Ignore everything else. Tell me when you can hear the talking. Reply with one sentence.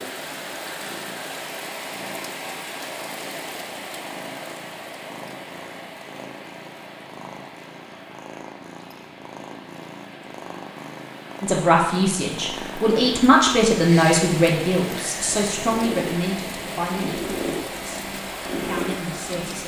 You can hear the talking from 11.4 to 19.6 s.